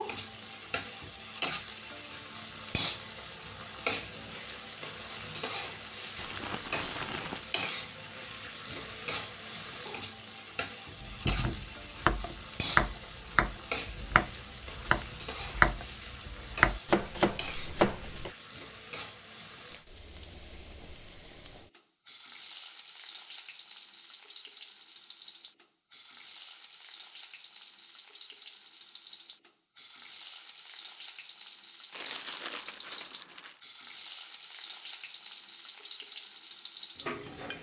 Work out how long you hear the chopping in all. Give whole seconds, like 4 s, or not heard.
7 s.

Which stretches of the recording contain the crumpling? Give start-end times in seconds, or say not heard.
6.2-7.5, 31.9-33.6.